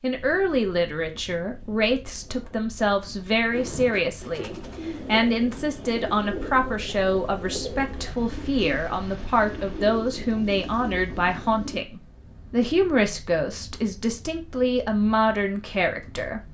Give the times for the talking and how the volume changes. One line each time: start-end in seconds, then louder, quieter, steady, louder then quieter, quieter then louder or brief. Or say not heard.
0.0-16.4 steady.